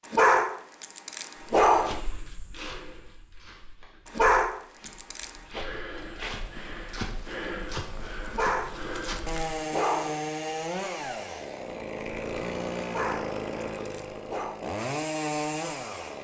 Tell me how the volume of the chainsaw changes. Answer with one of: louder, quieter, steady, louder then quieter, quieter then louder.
louder.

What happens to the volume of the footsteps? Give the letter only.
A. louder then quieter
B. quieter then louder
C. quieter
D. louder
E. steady
B.